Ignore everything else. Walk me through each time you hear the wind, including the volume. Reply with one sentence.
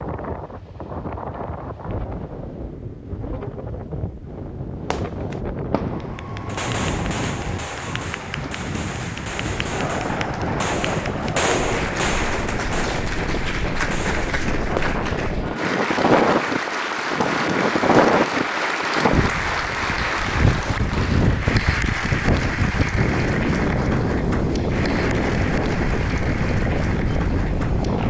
You can hear the wind from 0.0 to 28.0 s, getting louder.